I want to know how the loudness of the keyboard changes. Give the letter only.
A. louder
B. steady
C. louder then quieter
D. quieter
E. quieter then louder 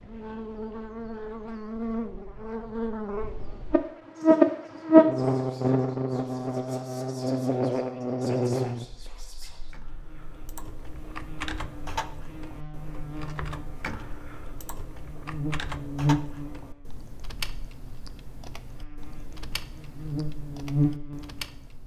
D.